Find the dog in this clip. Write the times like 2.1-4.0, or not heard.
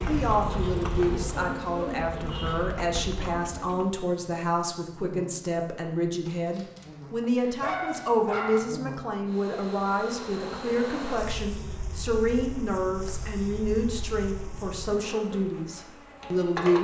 6.2-8.7.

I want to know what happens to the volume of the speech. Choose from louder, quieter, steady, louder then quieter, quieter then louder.
steady.